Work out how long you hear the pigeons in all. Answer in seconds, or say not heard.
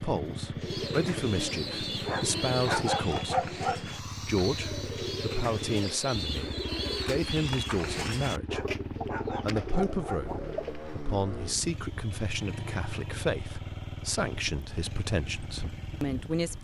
10 s.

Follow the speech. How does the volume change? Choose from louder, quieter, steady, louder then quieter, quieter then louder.
steady.